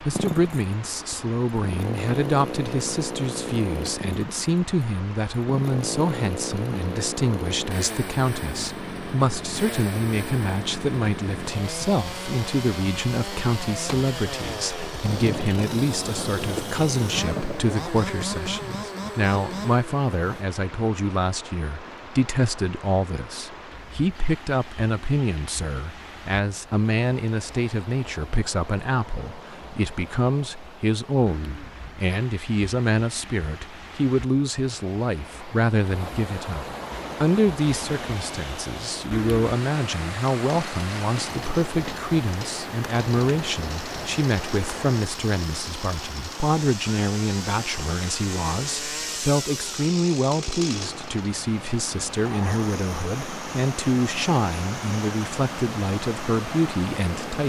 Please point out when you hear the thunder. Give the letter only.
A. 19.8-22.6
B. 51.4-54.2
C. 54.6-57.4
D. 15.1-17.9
D.